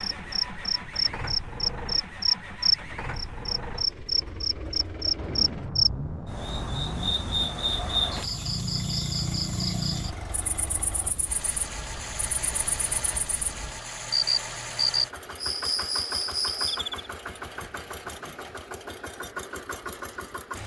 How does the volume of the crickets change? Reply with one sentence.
The volume of the crickets goes down, then up.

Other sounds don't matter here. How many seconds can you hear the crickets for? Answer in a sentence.
You can hear the crickets for 17 seconds altogether.